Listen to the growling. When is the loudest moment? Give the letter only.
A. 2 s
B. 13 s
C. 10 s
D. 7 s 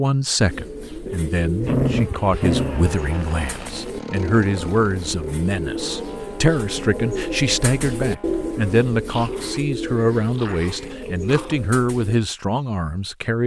A.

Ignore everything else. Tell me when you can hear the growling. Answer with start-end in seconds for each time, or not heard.
1.6-2.9, 9.1-11.6.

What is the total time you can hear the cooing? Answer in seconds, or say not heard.
12 s.